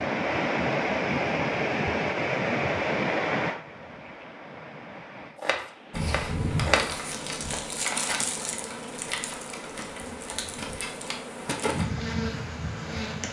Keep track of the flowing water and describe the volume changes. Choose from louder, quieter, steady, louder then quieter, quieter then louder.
quieter.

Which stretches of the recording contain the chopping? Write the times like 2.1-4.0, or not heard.
5.3-6.8.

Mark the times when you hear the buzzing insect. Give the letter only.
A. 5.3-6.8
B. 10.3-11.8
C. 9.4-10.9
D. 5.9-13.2
D.